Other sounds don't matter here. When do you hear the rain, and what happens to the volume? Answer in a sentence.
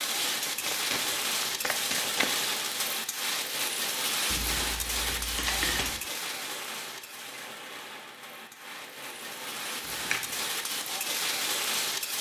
The rain can be heard from 0.0 to 12.1 s, getting quieter then louder.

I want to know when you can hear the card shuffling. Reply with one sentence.
You can hear the card shuffling from 0.5 to 2.5 s, from 4.3 to 6.0 s and from 9.8 to 10.4 s.